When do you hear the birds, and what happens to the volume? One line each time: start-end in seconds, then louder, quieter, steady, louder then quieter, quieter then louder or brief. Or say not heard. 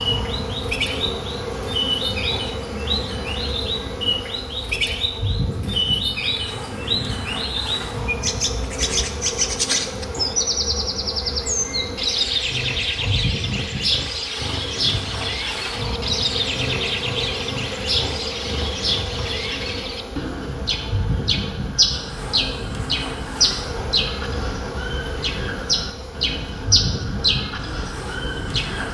0.0-28.8 steady.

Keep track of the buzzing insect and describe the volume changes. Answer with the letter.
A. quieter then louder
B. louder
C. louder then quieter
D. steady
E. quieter
D.